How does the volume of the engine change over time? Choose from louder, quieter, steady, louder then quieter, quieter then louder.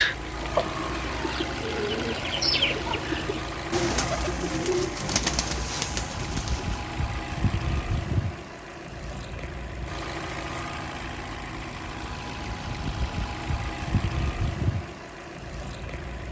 steady.